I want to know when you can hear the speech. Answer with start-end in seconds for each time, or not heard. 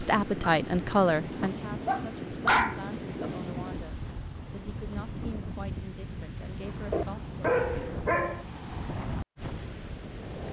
0.0-7.3.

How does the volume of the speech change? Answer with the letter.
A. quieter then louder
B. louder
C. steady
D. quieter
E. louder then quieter
D.